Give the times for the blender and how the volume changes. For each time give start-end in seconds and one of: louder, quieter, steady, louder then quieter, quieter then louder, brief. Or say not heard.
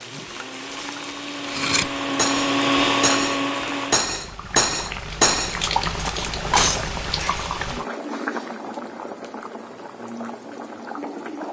0.0-4.0 louder.